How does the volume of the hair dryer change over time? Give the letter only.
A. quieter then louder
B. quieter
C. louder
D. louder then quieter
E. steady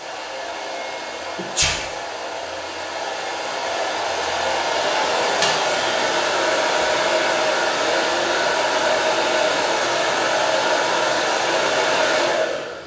C.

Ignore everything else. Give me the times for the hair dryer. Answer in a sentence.
You can hear the hair dryer from 0.0 to 12.8 s.